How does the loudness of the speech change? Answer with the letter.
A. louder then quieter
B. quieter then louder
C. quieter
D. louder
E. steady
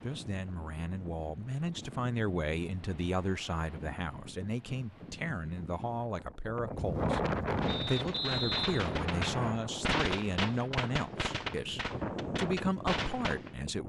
E.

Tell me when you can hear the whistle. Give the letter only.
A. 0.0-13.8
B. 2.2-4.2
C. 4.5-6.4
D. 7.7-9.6
D.